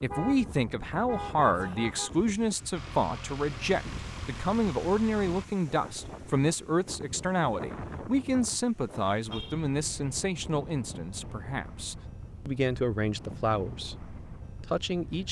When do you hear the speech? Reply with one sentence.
You can hear the speech from 0.0 to 15.2 s.